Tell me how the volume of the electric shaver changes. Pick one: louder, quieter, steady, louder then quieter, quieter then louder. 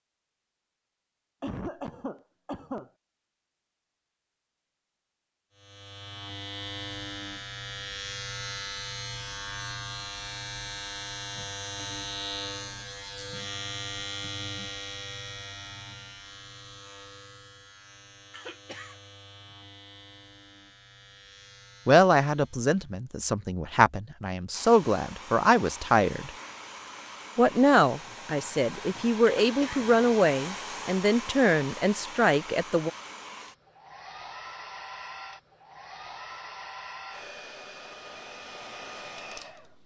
quieter.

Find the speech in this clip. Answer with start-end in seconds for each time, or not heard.
21.9-26.3, 27.4-32.9.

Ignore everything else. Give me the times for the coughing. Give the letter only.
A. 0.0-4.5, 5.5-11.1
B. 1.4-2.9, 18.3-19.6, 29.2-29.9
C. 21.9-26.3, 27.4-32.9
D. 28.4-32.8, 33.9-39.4
B.